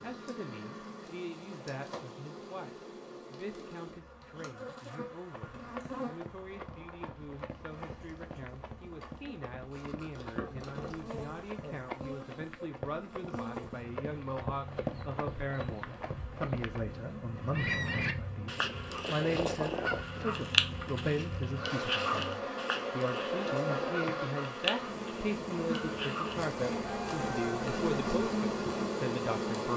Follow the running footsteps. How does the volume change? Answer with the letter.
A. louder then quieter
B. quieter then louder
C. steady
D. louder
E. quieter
D.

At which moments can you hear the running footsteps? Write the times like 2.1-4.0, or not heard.
5.3-16.8.